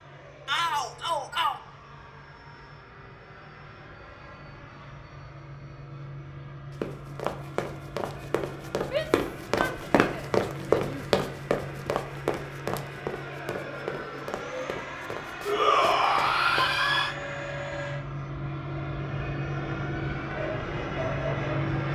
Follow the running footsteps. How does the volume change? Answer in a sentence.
The volume of the running footsteps goes up, then down.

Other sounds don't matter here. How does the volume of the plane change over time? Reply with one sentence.
The loudness of the plane goes up.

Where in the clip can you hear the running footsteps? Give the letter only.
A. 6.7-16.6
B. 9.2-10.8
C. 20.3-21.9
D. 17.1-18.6
A.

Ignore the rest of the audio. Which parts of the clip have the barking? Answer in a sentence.
The barking can be heard from 20.3 to 21.9 s.